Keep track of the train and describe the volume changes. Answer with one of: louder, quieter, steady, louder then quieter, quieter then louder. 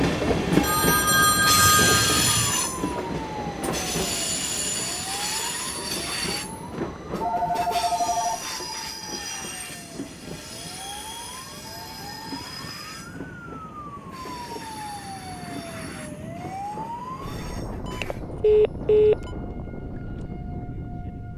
quieter.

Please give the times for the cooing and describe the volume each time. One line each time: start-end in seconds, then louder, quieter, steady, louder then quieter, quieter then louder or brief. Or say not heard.
not heard.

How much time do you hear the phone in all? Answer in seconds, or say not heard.
5 s.